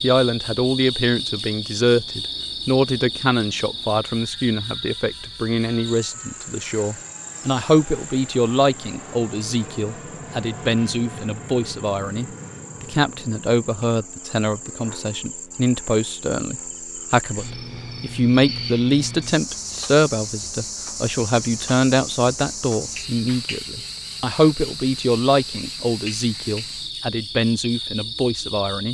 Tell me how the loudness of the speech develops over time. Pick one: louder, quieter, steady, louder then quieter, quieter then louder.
steady.